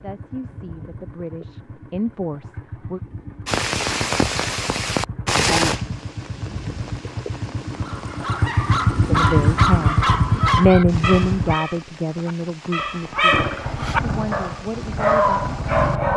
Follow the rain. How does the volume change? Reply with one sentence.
The volume of the rain goes down.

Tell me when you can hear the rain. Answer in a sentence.
The rain can be heard from 3.5 to 16.0 s.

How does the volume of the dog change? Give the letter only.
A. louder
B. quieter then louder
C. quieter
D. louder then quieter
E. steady
B.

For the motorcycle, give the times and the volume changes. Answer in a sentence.
The motorcycle can be heard from 0.0 to 11.6 s, getting louder; and briefly from 13.3 to 16.1 s.